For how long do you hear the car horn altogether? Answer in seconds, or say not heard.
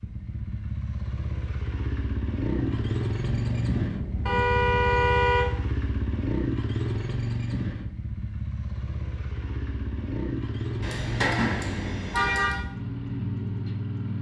3 s.